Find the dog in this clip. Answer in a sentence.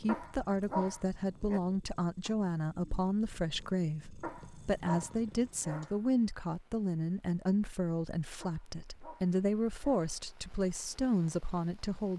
You can hear the dog from 0.1 to 1.6 s, from 4.2 to 6.0 s and from 8.4 to 10.1 s.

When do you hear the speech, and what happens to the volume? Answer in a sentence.
You can hear the speech from 0.0 to 12.1 s, at a steady volume.